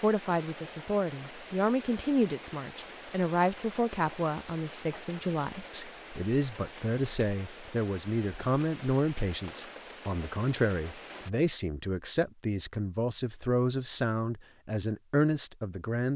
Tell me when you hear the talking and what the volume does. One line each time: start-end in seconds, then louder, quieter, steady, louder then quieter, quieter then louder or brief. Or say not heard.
0.0-16.1 steady.